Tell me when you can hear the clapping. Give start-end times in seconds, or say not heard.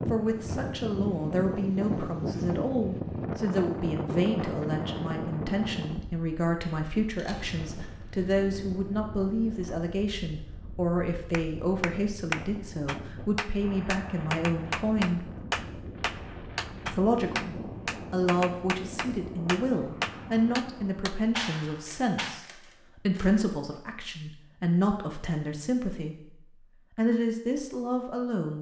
11.3-22.4.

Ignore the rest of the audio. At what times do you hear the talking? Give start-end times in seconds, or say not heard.
0.1-15.2, 16.9-26.1, 26.9-28.5.